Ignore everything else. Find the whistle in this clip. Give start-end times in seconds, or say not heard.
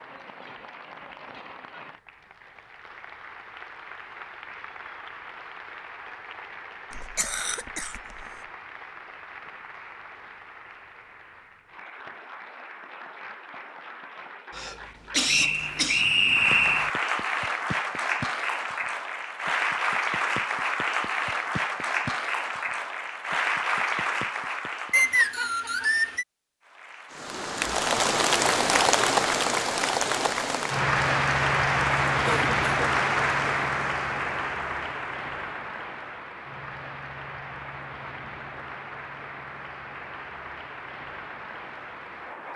15.2-16.9, 24.9-26.2.